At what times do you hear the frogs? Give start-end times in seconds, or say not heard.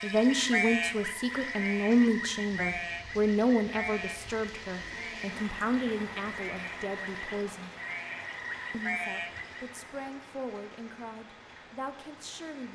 0.0-9.8.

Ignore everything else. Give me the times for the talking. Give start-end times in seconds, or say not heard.
0.0-7.7, 8.7-12.7.